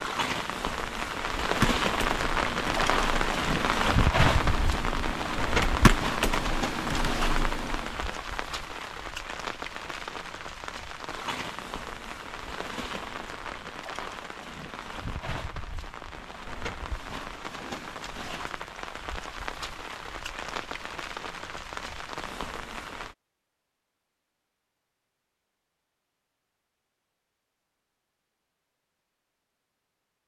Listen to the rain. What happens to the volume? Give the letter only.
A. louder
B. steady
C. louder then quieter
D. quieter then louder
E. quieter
E.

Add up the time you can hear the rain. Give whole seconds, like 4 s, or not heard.
23 s.